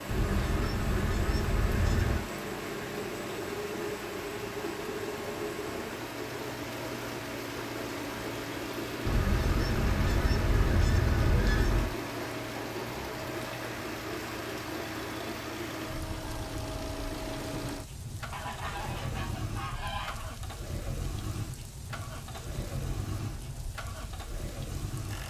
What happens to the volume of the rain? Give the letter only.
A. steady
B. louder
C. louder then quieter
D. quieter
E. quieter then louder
D.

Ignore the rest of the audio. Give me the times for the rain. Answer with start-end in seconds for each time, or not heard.
0.0-25.2.